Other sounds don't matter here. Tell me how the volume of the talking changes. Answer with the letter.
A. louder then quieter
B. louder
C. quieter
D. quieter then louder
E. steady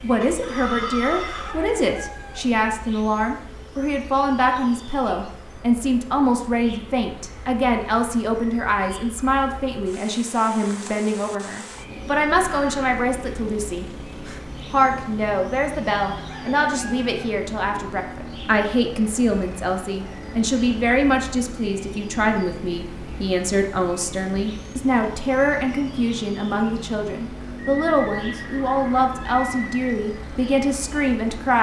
E.